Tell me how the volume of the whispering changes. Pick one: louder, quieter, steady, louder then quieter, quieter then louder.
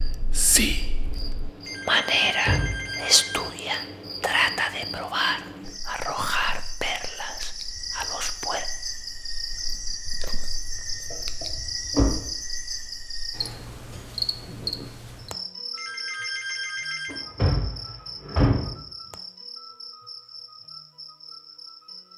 quieter.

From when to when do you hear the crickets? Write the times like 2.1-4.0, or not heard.
0.0-22.1.